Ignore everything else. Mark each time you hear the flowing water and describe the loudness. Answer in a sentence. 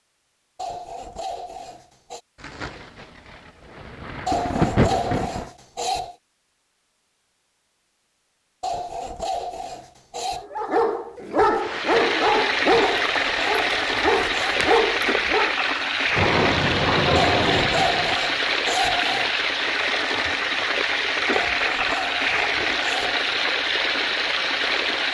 You can hear the flowing water from 11.5 to 25.1 s, at a steady volume.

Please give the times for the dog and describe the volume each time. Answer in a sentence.
You can hear the dog from 10.4 to 15.6 s, at a steady volume.